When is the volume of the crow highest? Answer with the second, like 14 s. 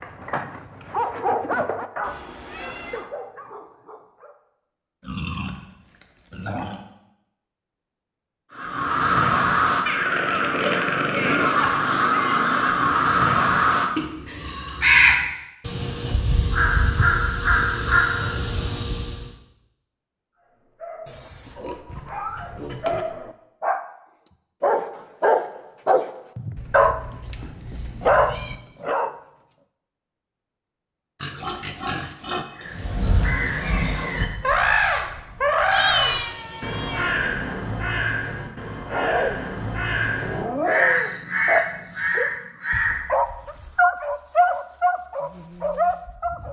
15 s.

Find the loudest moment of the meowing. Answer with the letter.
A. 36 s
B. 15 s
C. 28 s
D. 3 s
A.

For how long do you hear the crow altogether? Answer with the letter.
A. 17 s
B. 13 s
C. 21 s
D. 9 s
C.